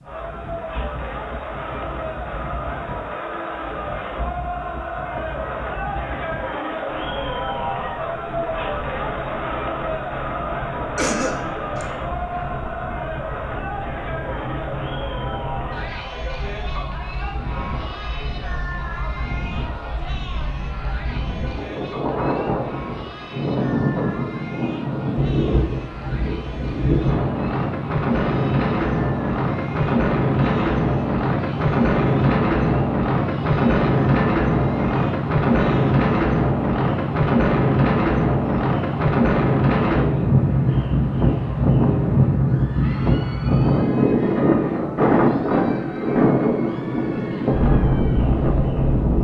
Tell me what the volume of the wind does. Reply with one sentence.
The volume of the wind goes up.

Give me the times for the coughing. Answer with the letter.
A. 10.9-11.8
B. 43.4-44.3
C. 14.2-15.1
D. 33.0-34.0
A.